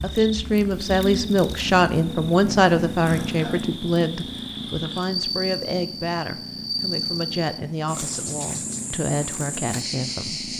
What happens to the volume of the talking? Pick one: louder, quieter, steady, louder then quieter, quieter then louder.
quieter.